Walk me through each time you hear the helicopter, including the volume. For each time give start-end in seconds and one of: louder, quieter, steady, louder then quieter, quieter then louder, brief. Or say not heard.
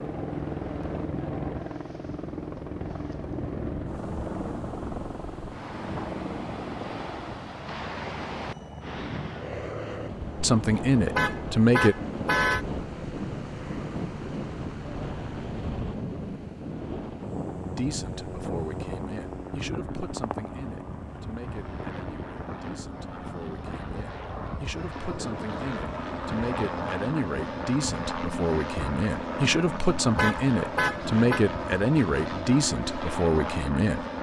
0.0-34.1 quieter then louder.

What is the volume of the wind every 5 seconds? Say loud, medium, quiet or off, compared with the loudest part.
medium, loud, loud, loud, medium, medium, off.